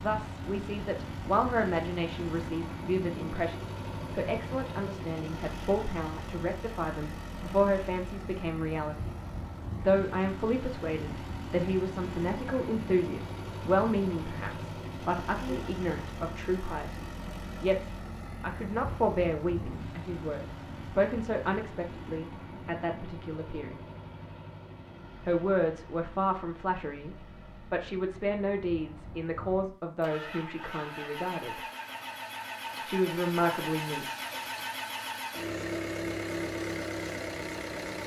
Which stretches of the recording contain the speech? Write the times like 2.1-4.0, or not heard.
0.0-9.2, 9.8-23.8, 25.2-31.6, 32.9-34.0.